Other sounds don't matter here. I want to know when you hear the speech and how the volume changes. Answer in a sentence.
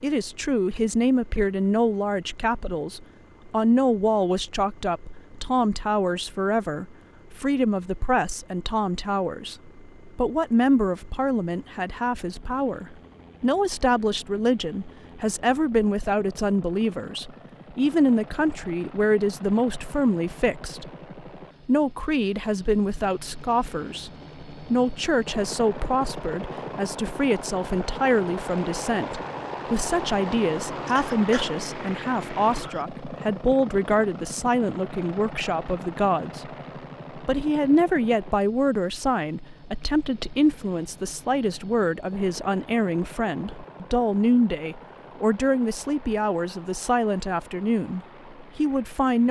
You can hear the speech from 0.0 to 20.9 s, at a steady volume; from 21.6 to 36.5 s, at a steady volume; and from 37.1 to 49.2 s, at a steady volume.